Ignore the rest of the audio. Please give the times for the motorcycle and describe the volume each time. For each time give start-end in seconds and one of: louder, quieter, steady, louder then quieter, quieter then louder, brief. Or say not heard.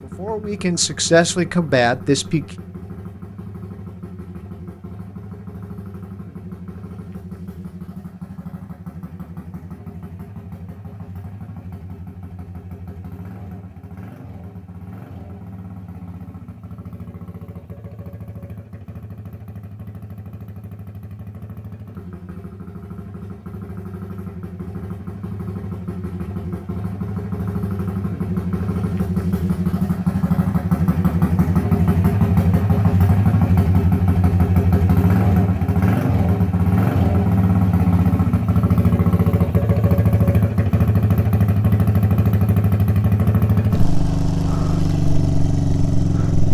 0.0-46.5 louder.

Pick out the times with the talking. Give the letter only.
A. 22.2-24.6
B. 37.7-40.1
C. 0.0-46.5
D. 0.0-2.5
D.